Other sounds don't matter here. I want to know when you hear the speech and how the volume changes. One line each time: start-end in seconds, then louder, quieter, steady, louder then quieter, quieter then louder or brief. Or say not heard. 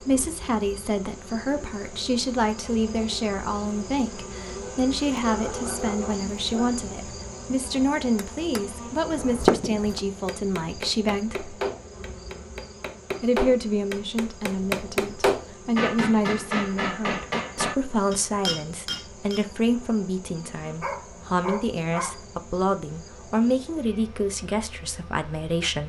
0.0-11.6 steady
13.2-25.8 steady.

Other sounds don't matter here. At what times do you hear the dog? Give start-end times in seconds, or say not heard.
5.2-6.8, 20.8-22.1.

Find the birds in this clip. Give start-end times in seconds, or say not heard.
not heard.